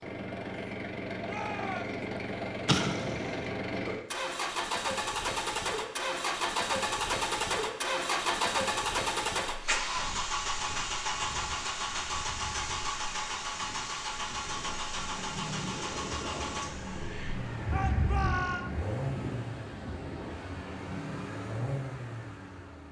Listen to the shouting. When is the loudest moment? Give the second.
18 s.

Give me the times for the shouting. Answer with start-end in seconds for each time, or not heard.
1.2-2.0, 17.7-18.6.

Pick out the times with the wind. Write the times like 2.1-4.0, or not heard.
9.9-22.8.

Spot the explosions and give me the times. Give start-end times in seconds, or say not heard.
2.6-3.5.